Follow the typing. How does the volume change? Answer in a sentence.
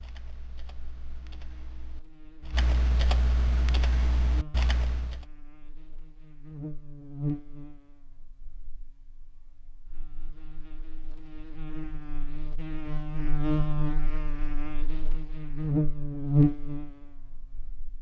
The loudness of the typing goes up.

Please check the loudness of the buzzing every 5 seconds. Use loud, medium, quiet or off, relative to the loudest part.
quiet, quiet, medium, loud.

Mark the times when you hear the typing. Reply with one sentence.
The typing can be heard from 0.0 to 5.2 s.